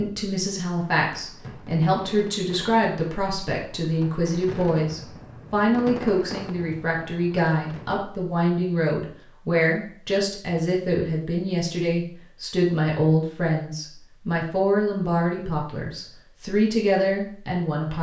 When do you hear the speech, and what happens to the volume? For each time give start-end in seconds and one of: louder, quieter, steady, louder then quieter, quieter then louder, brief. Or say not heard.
0.0-17.9 steady.